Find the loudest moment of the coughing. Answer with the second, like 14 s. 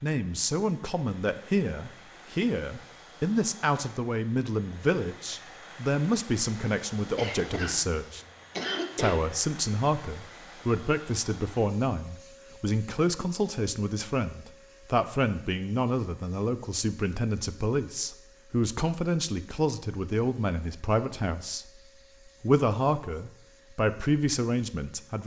9 s.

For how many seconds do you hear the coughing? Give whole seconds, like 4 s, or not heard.
2 s.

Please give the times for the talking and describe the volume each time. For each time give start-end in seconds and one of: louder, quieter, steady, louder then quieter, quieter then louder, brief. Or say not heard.
0.0-8.2 steady
8.9-21.6 steady
22.4-25.2 brief.